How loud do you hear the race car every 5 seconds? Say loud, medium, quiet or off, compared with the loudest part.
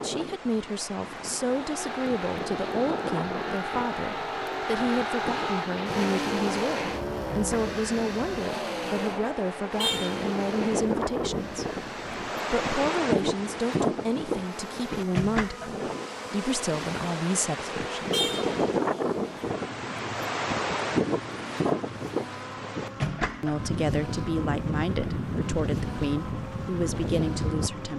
loud, loud, medium, medium, medium, medium.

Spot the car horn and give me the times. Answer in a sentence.
You can hear the car horn from 9.8 to 10.2 s and from 18.1 to 18.6 s.